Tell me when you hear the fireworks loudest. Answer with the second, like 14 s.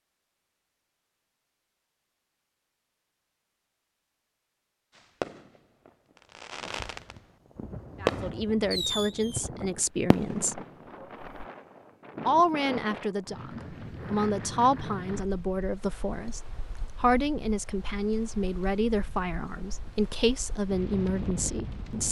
8 s.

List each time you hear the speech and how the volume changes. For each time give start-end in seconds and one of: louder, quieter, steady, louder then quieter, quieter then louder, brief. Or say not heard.
8.0-10.6 brief
12.2-22.0 steady.